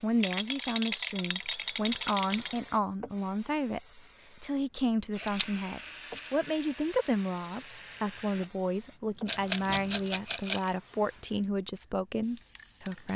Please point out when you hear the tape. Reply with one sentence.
You can't hear the tape here.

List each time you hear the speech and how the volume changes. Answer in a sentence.
You can hear the speech from 0.0 to 13.1 s, at a steady volume.